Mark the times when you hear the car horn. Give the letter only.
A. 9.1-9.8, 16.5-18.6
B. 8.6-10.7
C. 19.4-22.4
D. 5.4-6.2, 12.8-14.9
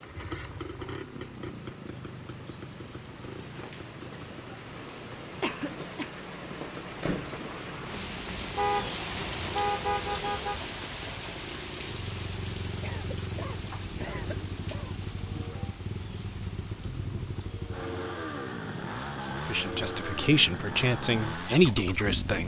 B.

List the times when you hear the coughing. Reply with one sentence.
The coughing can be heard from 5.4 to 6.2 s and from 12.8 to 14.9 s.